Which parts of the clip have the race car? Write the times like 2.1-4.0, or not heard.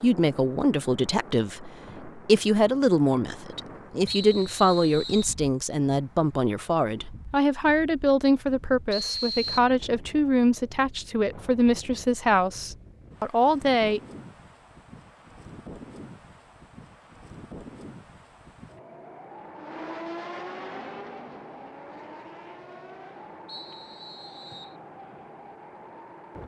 19.5-23.4.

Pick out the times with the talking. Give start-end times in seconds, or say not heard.
0.0-14.0.